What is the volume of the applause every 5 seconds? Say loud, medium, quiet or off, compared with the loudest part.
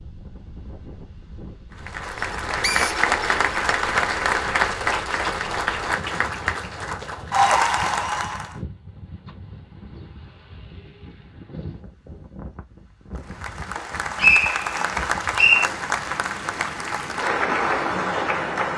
loud, loud, medium, loud.